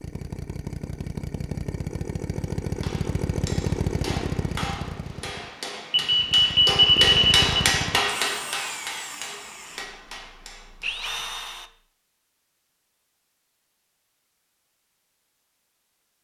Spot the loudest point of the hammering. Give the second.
8 s.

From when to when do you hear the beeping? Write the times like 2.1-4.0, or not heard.
5.9-7.5.